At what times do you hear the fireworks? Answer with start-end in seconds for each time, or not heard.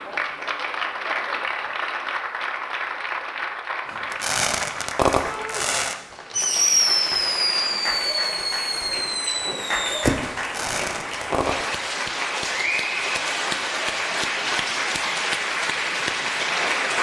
3.9-11.9.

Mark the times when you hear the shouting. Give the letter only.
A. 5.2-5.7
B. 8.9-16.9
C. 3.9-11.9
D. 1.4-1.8
A.